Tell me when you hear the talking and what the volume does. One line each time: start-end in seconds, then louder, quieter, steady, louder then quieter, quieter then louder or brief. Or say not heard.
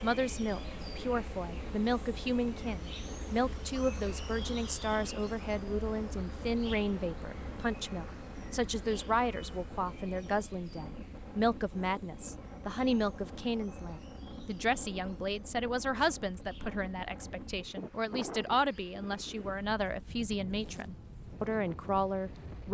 0.0-22.6 steady.